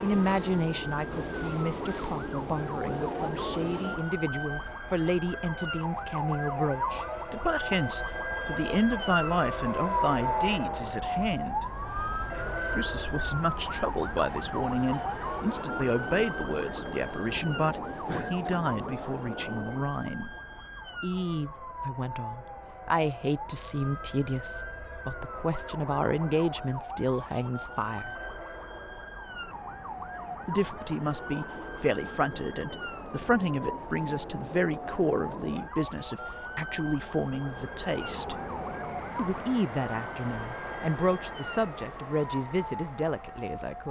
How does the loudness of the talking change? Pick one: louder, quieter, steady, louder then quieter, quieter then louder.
steady.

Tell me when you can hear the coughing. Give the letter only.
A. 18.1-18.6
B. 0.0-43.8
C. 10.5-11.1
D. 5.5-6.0
A.